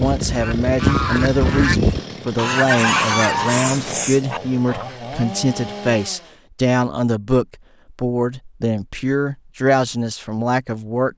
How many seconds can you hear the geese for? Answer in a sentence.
You can hear the geese for 5 seconds altogether.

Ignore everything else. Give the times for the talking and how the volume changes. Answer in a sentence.
The talking can be heard from 0.0 to 11.1 s, at a steady volume.